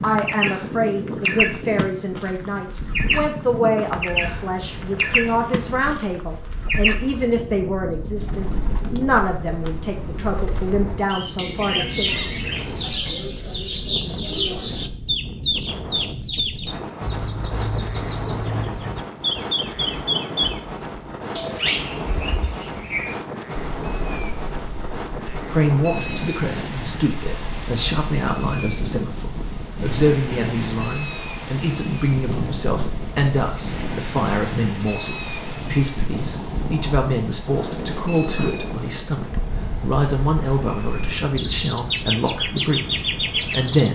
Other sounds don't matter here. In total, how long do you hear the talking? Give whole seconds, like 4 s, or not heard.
31 s.